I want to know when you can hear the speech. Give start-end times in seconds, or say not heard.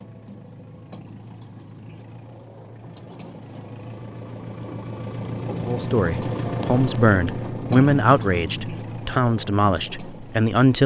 5.7-10.8.